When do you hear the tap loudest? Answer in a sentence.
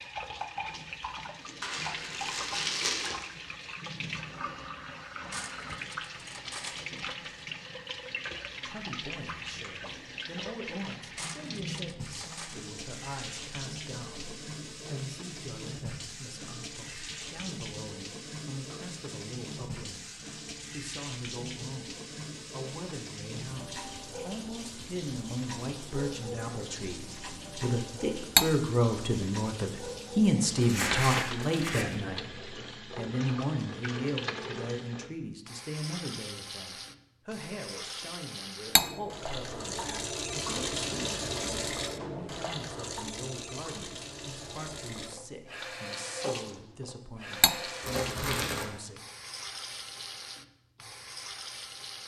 The loudest moment of the tap is at 41 seconds.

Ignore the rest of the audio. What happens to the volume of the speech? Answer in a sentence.
The loudness of the speech goes up, then down.